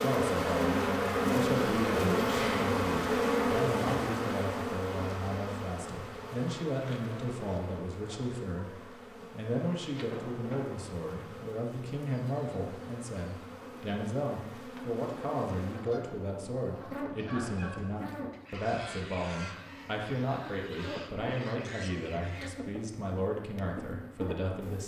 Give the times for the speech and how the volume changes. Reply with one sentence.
The speech can be heard from 0.0 to 24.8 s, at a steady volume.